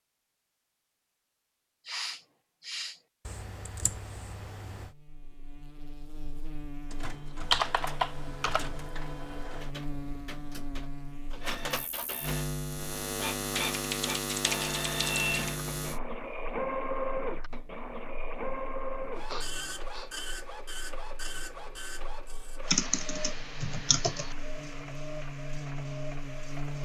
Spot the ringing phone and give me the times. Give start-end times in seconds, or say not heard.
not heard.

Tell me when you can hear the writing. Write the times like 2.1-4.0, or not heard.
not heard.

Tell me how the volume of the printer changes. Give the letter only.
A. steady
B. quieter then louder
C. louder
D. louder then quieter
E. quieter
D.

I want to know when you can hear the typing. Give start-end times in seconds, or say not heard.
3.2-4.9, 7.4-8.9, 13.5-15.5, 22.6-24.4.